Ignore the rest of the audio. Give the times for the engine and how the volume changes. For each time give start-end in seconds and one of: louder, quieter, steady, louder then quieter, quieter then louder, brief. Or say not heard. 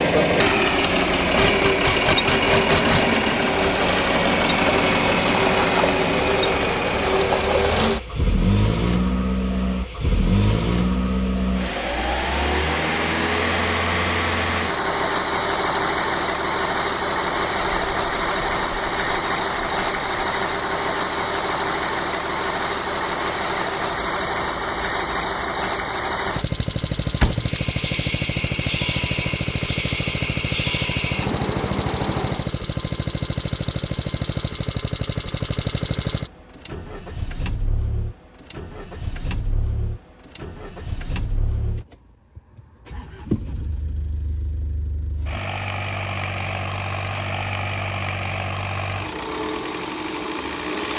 0.0-50.9 quieter.